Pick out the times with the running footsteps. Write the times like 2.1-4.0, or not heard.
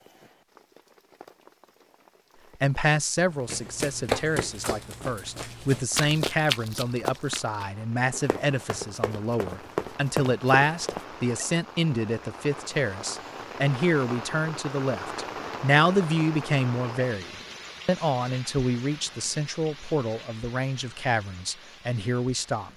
3.4-11.1.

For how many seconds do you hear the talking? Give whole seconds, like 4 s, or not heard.
20 s.